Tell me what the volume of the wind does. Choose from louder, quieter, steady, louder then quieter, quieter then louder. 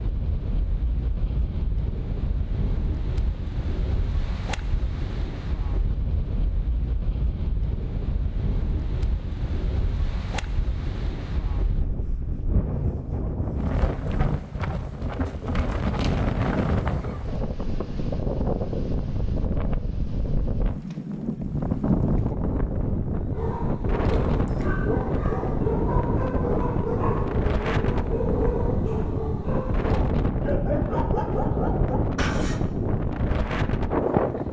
louder.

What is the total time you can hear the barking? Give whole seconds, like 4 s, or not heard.
9 s.